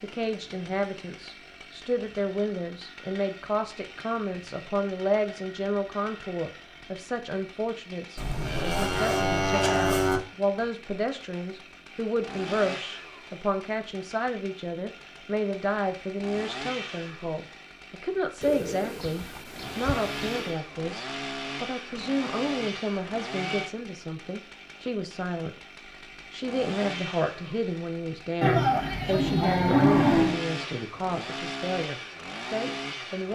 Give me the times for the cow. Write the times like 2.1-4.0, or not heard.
8.2-10.2, 28.4-30.4.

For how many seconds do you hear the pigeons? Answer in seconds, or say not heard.
2 s.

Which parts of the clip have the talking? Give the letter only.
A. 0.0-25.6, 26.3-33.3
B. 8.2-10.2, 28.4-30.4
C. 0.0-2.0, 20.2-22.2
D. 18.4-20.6
A.